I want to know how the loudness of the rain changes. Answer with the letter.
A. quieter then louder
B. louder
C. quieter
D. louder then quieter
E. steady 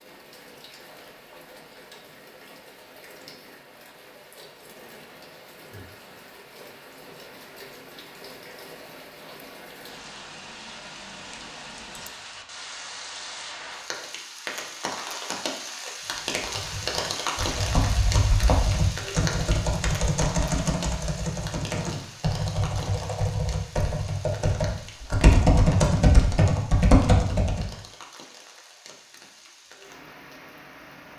D.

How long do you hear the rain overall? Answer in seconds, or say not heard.
31 s.